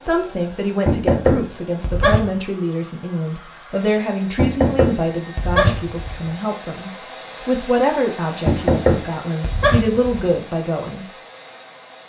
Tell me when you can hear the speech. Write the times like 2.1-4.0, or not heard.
0.0-11.1.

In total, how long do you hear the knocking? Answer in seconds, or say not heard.
5 s.